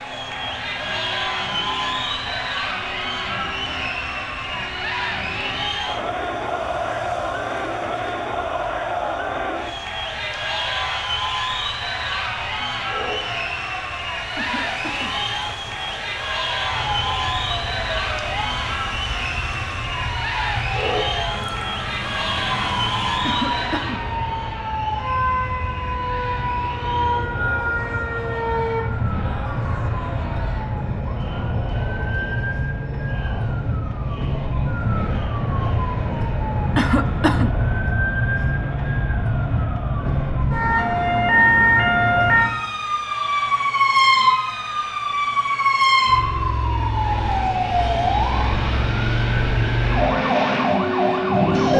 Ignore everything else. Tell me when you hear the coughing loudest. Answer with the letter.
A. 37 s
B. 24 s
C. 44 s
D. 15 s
A.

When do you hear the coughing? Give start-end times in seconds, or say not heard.
14.3-15.2, 23.2-24.1, 36.8-37.5.